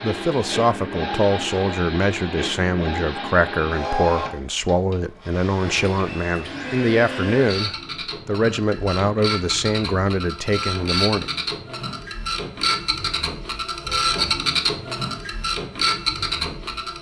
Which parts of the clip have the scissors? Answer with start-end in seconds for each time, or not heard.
not heard.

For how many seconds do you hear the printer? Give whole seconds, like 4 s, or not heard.
17 s.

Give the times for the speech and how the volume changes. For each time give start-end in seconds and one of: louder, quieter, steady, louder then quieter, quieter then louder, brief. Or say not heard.
0.0-11.3 steady.